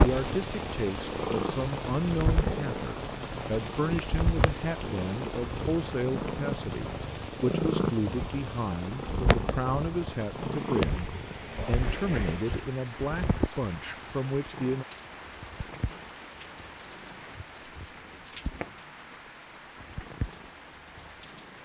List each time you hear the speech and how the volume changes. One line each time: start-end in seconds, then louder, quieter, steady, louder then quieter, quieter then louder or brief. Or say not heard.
0.0-14.8 steady.